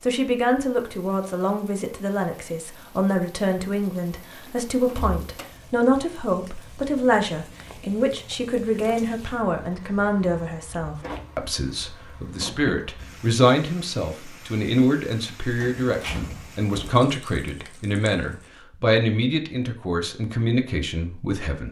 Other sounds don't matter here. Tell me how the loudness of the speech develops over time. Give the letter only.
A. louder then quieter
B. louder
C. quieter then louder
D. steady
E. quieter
D.